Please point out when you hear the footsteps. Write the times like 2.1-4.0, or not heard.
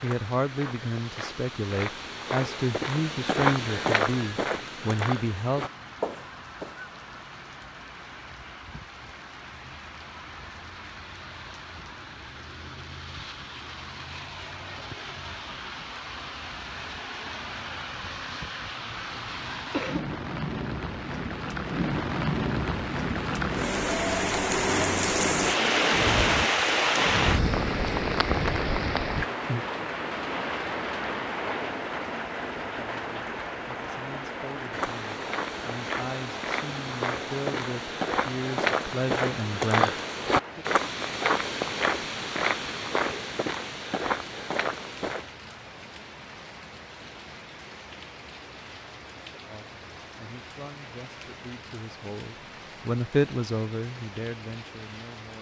0.0-7.0, 34.7-45.3.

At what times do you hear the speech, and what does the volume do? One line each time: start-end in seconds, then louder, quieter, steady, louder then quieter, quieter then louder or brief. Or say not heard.
0.0-5.7 steady
32.7-40.0 louder
49.5-55.3 louder then quieter.